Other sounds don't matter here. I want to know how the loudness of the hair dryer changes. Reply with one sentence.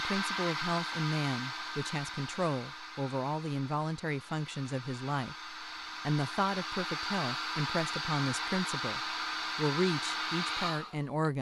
The loudness of the hair dryer goes down, then up.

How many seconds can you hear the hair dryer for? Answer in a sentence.
The hair dryer can be heard for 11 seconds in total.